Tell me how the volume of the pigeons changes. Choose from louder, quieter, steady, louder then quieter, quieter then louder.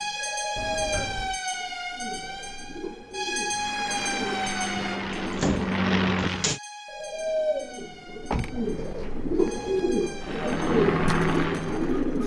louder.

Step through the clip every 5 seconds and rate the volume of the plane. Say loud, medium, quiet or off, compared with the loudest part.
medium, loud, loud.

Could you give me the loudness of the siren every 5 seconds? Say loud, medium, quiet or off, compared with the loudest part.
loud, quiet, quiet.